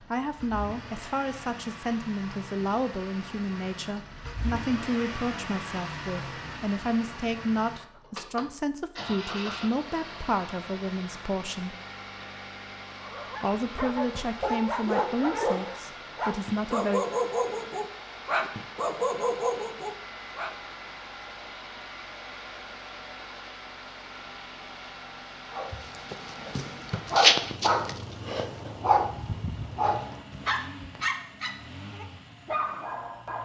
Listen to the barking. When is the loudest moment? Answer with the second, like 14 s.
27 s.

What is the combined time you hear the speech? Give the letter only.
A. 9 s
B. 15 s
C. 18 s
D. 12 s
B.